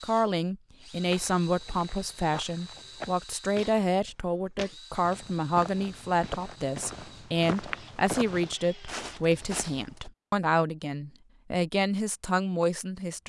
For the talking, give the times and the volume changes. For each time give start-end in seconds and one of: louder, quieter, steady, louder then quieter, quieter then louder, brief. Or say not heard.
0.0-13.2 steady.